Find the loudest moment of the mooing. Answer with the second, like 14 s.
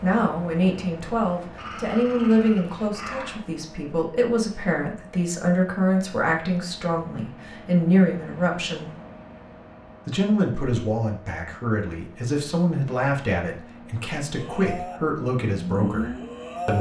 16 s.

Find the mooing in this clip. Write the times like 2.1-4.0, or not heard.
14.3-16.7.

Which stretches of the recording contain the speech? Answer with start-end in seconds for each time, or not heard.
0.0-8.9, 10.1-16.7.